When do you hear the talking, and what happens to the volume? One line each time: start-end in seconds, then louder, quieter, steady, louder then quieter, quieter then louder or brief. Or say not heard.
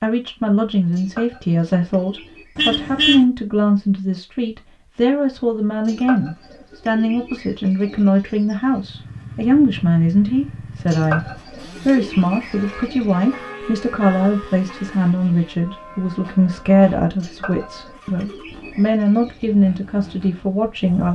0.0-21.1 steady.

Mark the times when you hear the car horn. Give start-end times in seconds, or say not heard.
2.5-3.2.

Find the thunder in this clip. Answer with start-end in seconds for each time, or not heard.
not heard.